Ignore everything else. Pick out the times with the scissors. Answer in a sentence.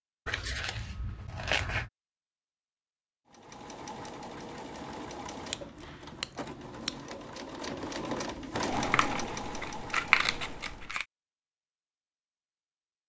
You can hear the scissors from 0.2 to 1.9 s, from 5.5 to 7.0 s and from 8.7 to 11.1 s.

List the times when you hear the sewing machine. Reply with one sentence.
You can hear the sewing machine from 3.2 to 10.9 s.